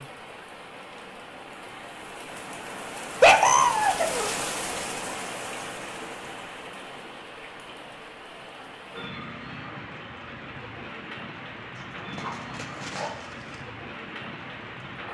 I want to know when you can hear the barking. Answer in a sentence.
You can hear the barking from 3.2 to 4.3 s and from 11.8 to 13.6 s.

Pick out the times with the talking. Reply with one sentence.
The talking can't be heard in this clip.